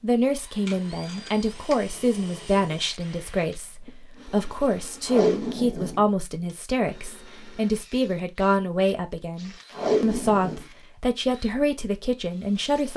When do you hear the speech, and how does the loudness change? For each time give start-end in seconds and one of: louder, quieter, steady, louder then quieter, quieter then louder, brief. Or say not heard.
0.0-12.9 steady.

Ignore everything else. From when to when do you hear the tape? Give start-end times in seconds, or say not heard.
0.7-1.8, 5.0-6.5, 9.7-10.7.